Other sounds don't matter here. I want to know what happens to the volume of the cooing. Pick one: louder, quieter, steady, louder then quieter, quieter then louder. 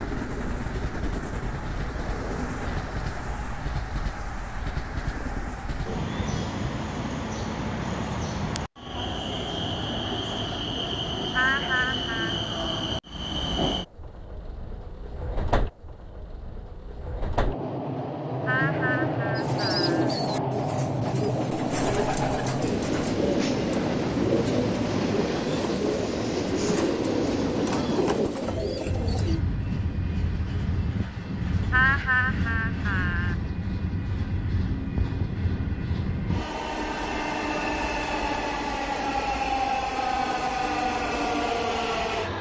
steady.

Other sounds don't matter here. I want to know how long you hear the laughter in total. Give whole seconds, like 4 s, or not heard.
4 s.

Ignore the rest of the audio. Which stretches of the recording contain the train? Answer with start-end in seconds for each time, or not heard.
0.0-42.3.